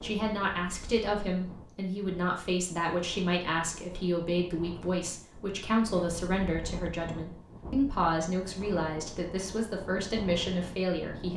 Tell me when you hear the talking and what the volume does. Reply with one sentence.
You can hear the talking from 0.0 to 11.3 s, at a steady volume.